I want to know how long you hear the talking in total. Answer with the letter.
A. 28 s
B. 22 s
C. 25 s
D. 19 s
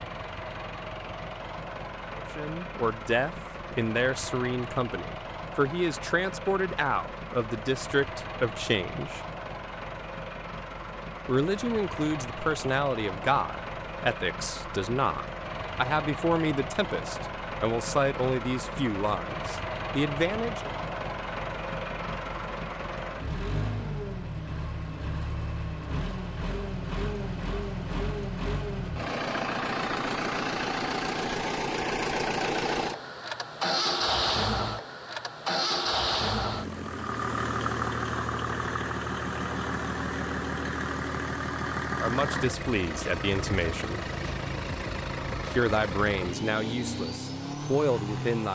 B.